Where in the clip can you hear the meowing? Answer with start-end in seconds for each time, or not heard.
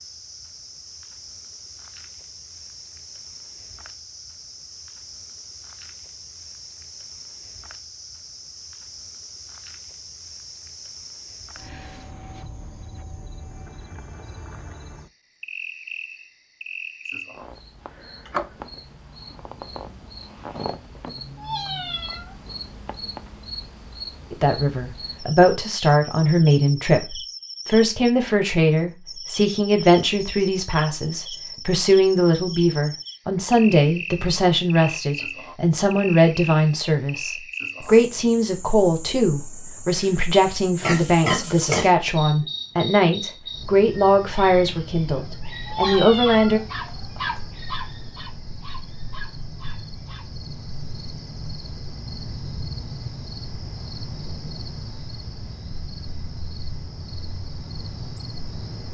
21.4-22.4, 45.6-47.4.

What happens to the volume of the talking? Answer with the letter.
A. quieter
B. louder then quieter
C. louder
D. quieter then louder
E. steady
E.